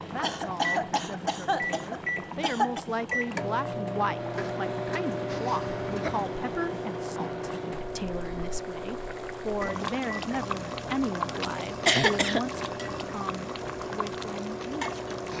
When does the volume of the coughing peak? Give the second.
12 s.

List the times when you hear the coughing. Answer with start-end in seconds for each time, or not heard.
0.2-2.9, 5.3-6.3, 11.4-13.0.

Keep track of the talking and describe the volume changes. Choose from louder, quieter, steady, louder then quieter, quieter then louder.
steady.